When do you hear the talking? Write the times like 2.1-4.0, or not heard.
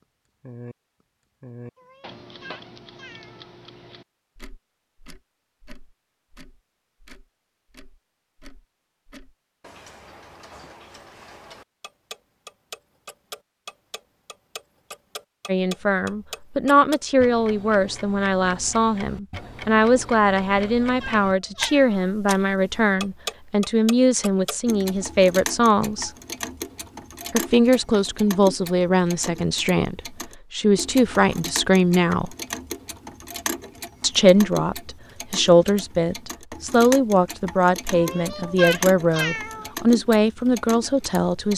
15.4-26.1, 27.3-32.4, 34.0-41.5.